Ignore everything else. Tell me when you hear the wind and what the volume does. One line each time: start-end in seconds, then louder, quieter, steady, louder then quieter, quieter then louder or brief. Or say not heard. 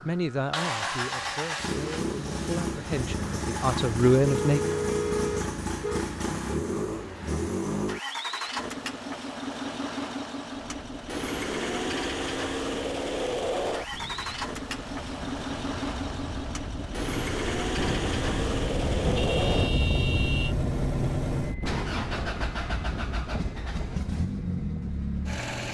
10.4-25.6 louder then quieter.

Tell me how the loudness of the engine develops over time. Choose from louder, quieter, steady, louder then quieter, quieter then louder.
steady.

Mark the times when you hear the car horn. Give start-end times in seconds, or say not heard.
4.2-6.0, 19.1-20.6.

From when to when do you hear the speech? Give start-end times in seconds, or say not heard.
0.0-4.6.